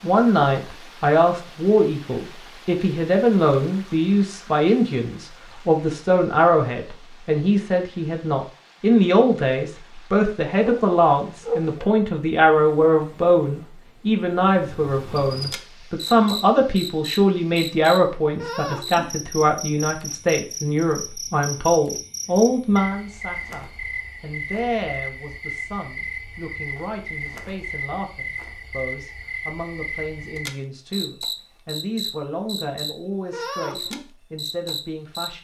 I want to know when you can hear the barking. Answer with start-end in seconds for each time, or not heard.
10.6-11.9.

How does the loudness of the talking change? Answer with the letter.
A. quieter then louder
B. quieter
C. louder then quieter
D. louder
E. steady
B.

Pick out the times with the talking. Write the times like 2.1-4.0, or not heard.
0.0-35.3.